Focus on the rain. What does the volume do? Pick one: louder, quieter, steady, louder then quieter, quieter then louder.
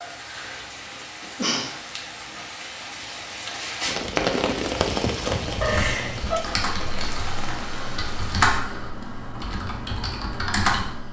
louder then quieter.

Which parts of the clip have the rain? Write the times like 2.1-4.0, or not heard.
0.0-8.5.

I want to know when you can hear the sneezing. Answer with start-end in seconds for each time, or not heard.
1.2-1.7, 5.6-6.4.